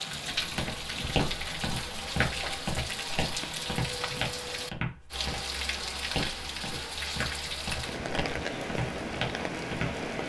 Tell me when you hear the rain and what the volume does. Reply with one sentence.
You can hear the rain from 0.0 to 10.2 s, at a steady volume.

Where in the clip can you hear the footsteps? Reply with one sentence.
You can hear the footsteps from 0.3 to 10.1 s.